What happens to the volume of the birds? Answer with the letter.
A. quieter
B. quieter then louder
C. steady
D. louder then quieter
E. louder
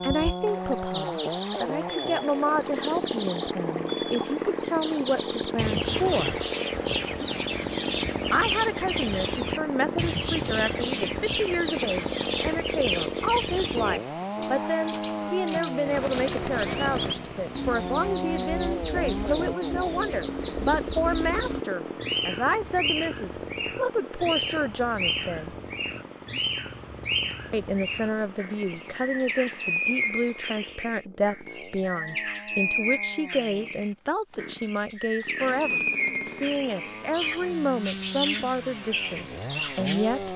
C.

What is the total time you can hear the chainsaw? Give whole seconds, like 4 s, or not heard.
40 s.